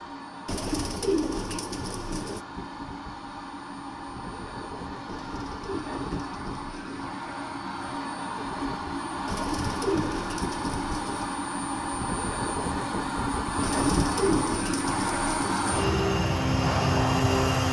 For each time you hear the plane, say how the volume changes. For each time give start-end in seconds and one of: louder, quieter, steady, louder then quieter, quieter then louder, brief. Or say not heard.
0.0-17.6 louder.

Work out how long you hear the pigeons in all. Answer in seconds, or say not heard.
8 s.